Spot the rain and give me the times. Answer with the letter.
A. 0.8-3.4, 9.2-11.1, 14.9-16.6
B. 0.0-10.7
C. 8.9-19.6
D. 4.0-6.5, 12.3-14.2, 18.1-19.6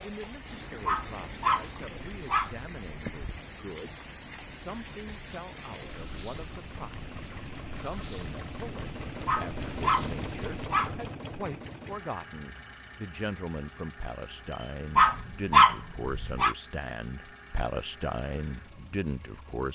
B.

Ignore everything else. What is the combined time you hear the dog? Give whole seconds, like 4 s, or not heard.
6 s.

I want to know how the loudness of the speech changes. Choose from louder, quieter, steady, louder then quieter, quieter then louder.
louder.